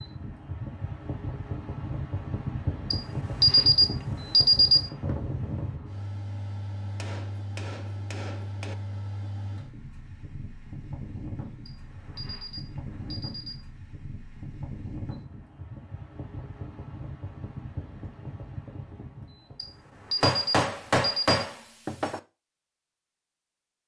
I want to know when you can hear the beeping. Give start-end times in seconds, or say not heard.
2.9-4.9, 11.7-13.7, 19.6-21.4.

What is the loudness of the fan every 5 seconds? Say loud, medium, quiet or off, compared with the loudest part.
loud, loud, medium, medium, off.